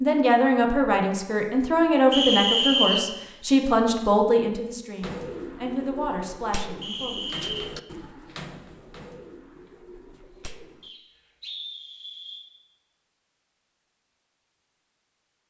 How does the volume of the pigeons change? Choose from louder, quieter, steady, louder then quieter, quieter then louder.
quieter.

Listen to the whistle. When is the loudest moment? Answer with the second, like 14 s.
3 s.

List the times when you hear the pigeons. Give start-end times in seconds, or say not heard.
5.0-10.9.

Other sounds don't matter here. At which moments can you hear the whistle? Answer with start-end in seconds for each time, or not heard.
2.1-3.0, 6.8-7.7, 10.8-12.4.